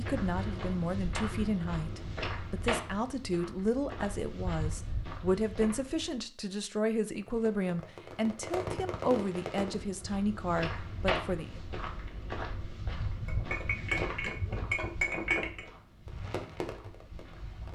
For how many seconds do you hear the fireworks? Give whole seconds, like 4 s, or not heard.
4 s.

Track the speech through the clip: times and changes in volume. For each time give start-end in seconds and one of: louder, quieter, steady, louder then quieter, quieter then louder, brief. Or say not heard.
0.0-11.6 steady.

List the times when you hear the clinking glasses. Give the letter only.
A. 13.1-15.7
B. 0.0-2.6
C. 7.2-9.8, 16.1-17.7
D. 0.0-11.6
A.